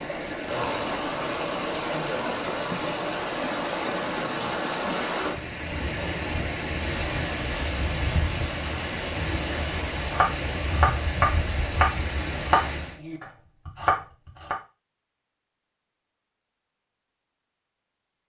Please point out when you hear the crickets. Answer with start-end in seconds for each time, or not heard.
not heard.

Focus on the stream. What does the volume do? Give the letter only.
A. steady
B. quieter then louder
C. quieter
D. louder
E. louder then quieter
A.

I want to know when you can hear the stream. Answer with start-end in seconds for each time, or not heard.
0.0-13.0.